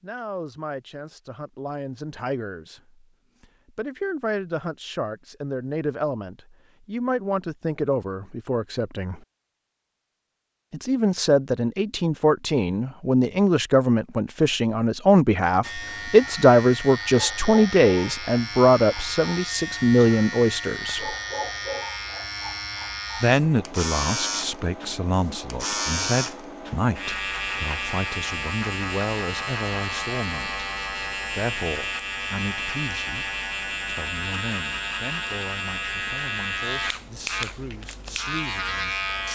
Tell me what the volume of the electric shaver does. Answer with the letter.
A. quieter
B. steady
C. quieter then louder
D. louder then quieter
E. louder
B.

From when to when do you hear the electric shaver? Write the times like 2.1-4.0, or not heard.
15.6-39.3.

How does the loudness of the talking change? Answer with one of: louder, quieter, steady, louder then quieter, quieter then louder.
louder then quieter.